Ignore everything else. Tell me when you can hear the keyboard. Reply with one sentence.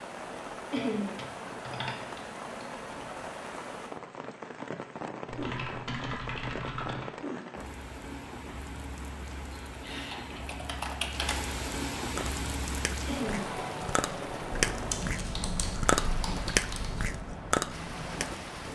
You can hear the keyboard from 0.8 to 3.1 s, from 5.2 to 7.1 s, from 9.6 to 11.4 s and from 14.7 to 17.2 s.